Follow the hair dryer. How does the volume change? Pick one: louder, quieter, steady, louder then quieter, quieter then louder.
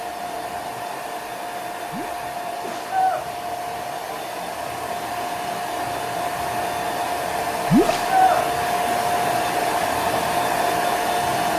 louder.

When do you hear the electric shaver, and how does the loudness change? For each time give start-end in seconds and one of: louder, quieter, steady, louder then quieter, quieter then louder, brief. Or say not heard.
not heard.